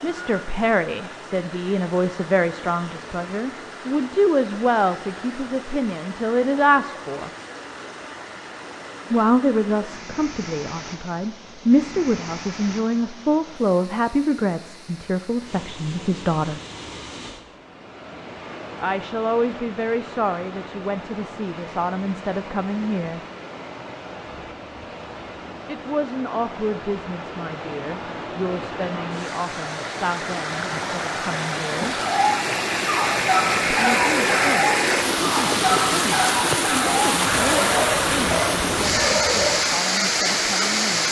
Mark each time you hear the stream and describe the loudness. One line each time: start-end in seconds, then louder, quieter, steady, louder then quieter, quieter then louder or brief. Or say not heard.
0.0-41.0 louder.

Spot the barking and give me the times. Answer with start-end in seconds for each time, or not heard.
31.9-39.6.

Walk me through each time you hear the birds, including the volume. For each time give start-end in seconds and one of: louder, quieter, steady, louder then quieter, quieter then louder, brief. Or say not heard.
not heard.